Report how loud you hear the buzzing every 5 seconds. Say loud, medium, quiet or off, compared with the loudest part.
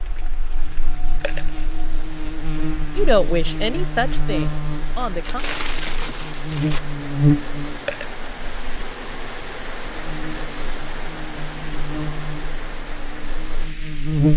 medium, loud, loud.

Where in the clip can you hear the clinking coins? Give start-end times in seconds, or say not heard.
1.2-1.6, 7.8-8.2.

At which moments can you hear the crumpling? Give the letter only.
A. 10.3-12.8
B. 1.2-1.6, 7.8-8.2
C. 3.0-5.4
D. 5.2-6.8
D.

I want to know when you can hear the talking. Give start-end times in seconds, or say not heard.
3.0-5.4.